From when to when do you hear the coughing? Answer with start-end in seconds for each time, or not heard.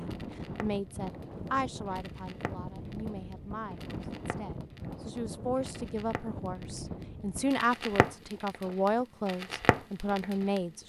not heard.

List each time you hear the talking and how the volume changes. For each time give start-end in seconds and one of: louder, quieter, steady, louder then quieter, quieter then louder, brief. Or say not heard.
0.0-10.8 quieter then louder.